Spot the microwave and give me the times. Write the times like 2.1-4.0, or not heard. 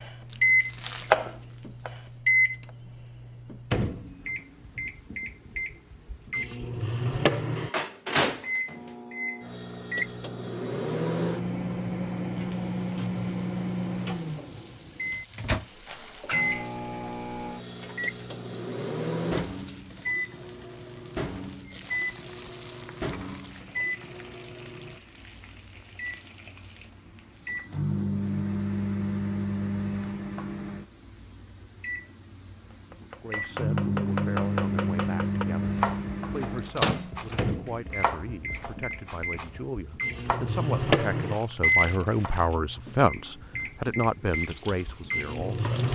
0.0-45.8.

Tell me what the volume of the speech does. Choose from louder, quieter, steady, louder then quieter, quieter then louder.
louder.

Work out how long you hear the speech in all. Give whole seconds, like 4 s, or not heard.
13 s.